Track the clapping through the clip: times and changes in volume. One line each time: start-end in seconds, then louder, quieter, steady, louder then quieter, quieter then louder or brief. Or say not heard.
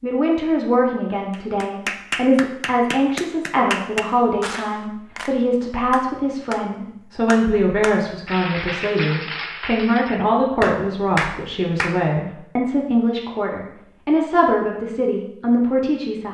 1.3-12.0 quieter then louder.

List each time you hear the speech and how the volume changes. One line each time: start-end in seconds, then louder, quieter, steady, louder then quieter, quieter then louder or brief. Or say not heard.
0.0-16.2 steady.